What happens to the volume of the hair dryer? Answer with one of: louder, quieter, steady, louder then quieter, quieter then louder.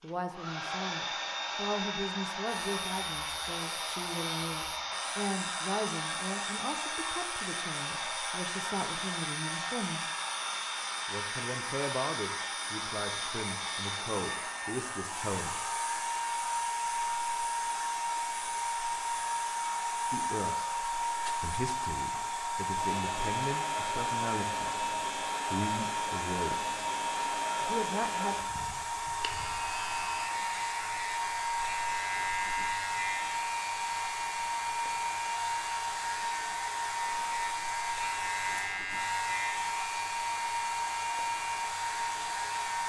steady.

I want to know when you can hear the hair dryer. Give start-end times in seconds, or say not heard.
0.0-42.8.